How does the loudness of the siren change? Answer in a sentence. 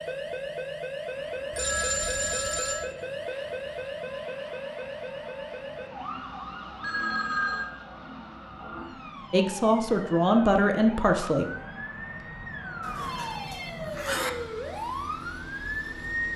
The volume of the siren goes down, then up.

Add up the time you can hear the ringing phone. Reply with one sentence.
The ringing phone can be heard for 4 seconds in total.